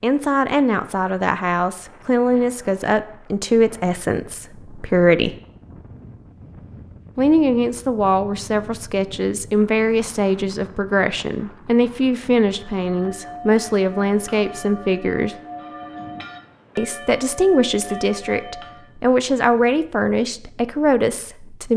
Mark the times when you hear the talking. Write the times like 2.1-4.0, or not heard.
0.0-5.3, 7.2-15.3, 16.8-21.7.